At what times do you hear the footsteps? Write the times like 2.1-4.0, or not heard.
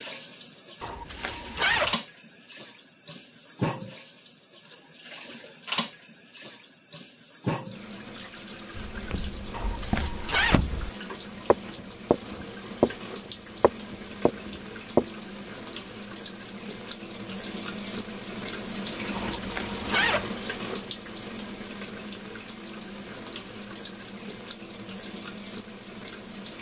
8.8-10.9, 11.5-15.1.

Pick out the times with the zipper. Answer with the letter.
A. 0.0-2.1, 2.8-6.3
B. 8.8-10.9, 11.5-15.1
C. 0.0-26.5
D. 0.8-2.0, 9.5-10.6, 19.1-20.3
D.